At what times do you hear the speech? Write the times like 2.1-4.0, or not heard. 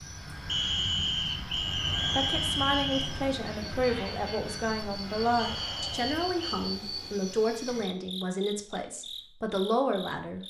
1.9-10.4.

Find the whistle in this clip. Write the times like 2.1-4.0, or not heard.
0.5-3.1, 5.3-6.7.